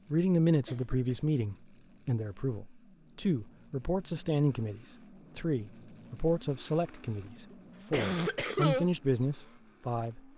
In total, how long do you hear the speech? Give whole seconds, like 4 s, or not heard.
10 s.